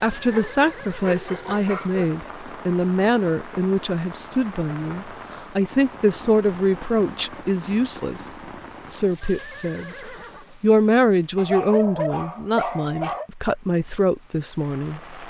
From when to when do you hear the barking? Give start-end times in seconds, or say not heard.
0.3-2.0, 11.3-13.3.